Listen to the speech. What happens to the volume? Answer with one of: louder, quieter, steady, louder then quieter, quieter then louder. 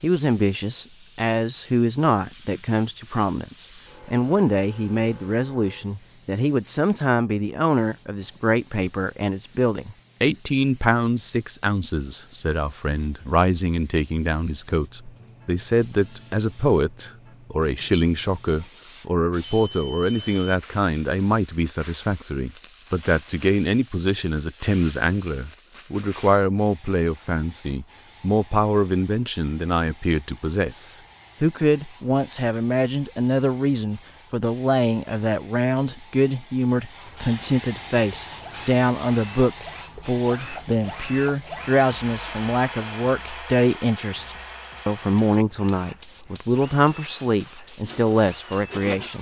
steady.